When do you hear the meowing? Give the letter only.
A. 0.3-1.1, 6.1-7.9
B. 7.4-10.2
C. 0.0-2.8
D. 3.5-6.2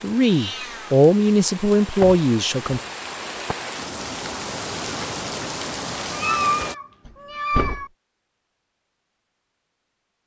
A.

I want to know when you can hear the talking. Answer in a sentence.
The talking can be heard from 0.0 to 2.8 s.